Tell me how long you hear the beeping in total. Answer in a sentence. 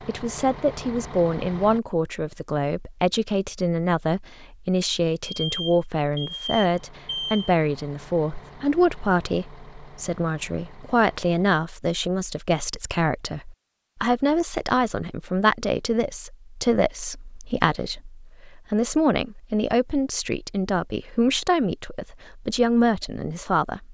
You can hear the beeping for 2 seconds altogether.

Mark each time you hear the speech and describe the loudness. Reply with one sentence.
The speech can be heard from 0.1 to 23.9 s, at a steady volume.